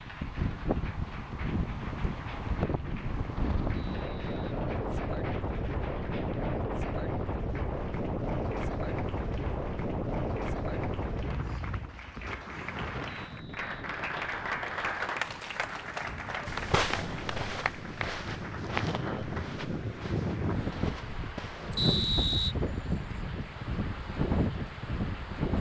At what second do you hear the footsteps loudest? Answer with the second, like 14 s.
17 s.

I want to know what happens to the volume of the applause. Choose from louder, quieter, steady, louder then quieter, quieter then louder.
louder then quieter.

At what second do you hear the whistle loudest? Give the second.
22 s.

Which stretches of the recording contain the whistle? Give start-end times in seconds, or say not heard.
3.8-4.5, 13.1-13.8, 21.8-22.6.